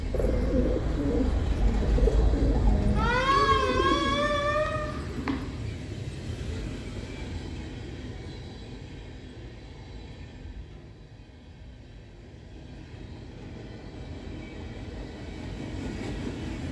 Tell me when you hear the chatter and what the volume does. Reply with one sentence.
The chatter can't be heard in this clip.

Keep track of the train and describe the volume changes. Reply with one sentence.
The loudness of the train goes down, then up.